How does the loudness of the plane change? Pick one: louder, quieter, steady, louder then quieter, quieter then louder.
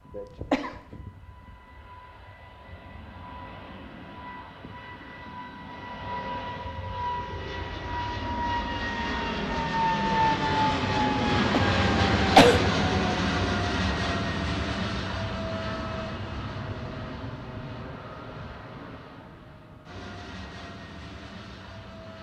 louder then quieter.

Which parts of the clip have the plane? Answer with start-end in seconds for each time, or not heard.
0.0-22.1.